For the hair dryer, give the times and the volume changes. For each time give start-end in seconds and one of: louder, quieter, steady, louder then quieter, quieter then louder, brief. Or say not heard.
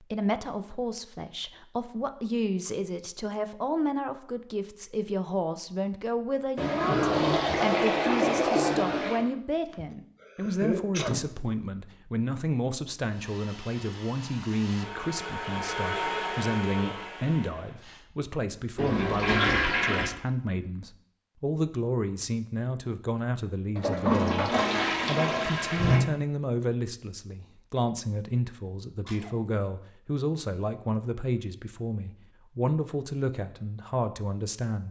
13.1-18.1 louder then quieter.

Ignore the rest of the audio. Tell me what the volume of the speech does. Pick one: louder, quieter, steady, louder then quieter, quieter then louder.
steady.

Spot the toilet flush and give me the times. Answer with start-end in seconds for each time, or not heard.
6.5-9.3, 18.8-20.1, 23.8-26.1.